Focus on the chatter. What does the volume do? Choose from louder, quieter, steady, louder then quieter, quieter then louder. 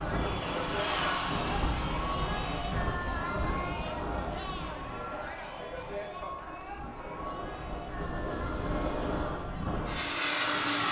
quieter.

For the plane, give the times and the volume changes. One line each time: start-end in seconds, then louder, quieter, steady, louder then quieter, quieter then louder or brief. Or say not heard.
0.0-10.8 quieter then louder.